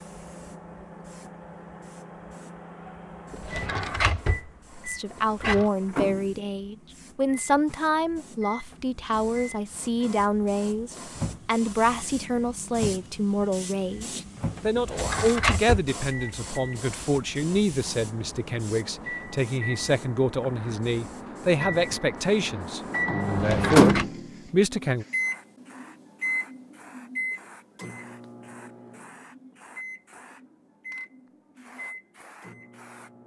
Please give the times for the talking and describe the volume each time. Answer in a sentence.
You can hear the talking from 4.8 to 25.1 s, at a steady volume.